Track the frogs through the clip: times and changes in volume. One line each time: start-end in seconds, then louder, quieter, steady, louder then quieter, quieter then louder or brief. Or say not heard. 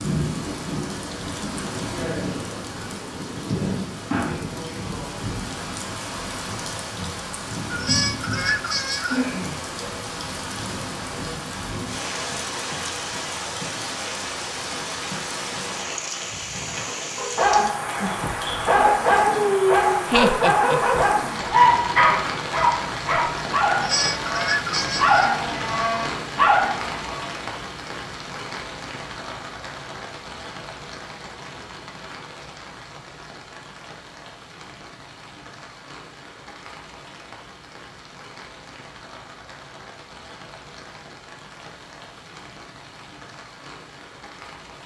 not heard.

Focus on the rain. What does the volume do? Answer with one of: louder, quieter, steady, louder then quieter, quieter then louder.
quieter.